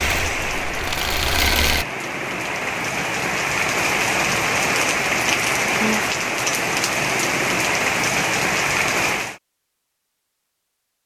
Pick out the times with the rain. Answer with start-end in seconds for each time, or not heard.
0.0-9.4.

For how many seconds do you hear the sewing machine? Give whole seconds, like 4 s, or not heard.
2 s.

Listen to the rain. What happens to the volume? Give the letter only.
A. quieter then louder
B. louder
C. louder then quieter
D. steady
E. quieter
B.